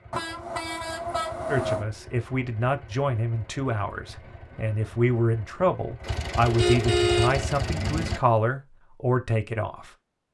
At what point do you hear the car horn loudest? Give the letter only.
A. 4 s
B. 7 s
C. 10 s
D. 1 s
B.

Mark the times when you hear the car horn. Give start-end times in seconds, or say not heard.
0.1-1.9, 6.5-8.2.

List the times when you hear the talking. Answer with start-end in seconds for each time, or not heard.
1.4-9.9.